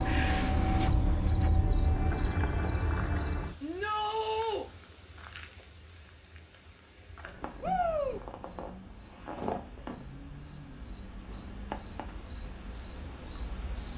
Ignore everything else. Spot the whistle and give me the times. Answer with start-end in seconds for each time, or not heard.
not heard.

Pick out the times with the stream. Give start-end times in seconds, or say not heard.
not heard.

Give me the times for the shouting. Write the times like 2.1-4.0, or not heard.
3.6-4.7, 7.6-8.2.